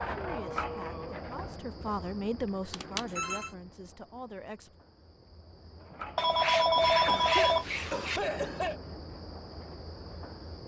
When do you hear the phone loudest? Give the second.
7 s.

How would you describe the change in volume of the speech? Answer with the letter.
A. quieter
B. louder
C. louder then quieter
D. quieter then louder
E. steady
C.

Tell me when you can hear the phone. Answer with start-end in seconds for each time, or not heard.
2.7-3.5, 6.2-8.2.